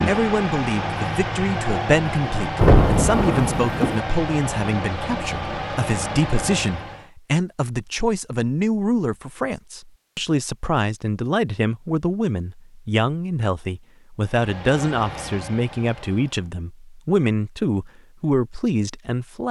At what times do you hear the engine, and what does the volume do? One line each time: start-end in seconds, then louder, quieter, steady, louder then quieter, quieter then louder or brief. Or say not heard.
0.0-7.1 steady
14.2-16.5 brief.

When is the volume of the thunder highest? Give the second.
3 s.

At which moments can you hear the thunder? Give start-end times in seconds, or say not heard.
2.5-4.0.